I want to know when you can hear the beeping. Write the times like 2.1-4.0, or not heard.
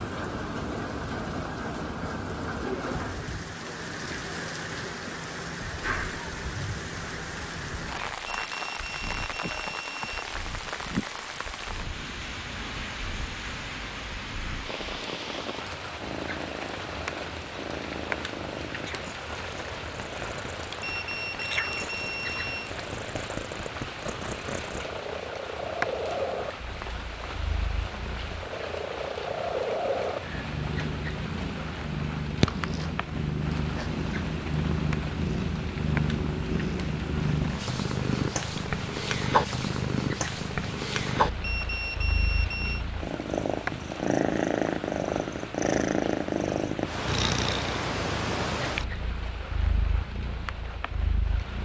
8.2-10.2, 20.8-22.7, 41.4-42.9.